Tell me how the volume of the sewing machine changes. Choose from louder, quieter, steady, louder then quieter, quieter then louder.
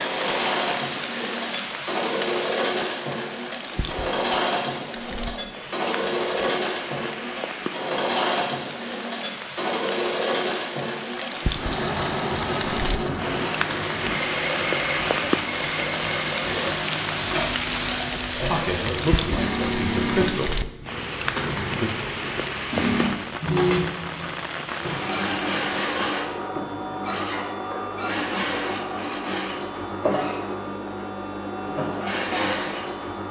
steady.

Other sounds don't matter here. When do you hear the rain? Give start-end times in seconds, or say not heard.
0.0-25.9.